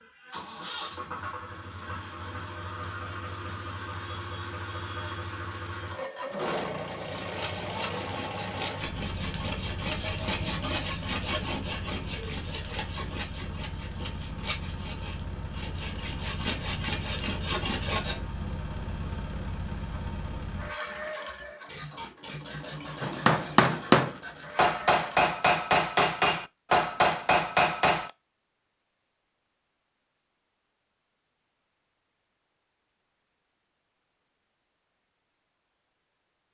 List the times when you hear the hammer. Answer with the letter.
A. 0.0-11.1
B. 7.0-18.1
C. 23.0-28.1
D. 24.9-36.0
C.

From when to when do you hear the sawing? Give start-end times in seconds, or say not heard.
7.0-18.1.